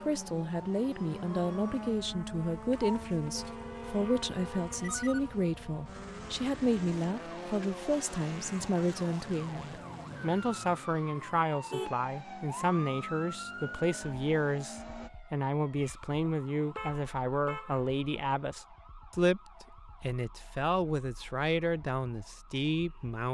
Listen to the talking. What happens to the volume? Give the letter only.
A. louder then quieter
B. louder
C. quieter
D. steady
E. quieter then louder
D.